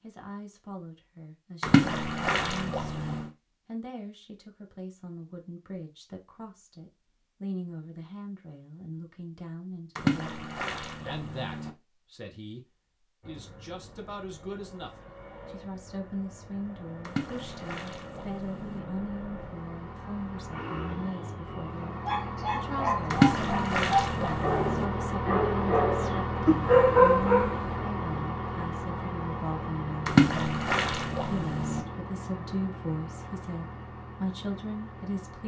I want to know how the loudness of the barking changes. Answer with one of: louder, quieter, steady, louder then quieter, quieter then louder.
louder.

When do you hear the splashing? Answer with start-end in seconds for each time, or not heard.
1.6-3.2, 9.9-11.7, 17.1-18.8, 23.1-24.9, 30.1-31.8.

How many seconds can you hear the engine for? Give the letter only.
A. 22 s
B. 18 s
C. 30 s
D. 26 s
A.